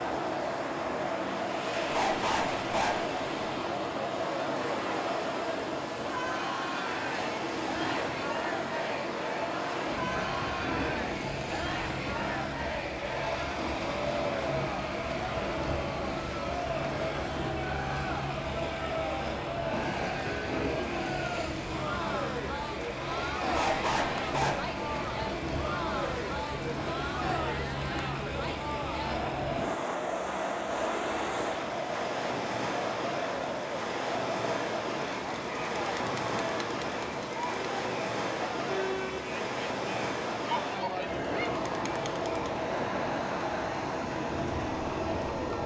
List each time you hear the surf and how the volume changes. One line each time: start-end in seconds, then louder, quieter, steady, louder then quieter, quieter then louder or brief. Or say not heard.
0.0-45.6 steady.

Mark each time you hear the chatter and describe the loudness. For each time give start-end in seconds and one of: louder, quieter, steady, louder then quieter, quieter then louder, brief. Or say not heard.
0.0-45.6 steady.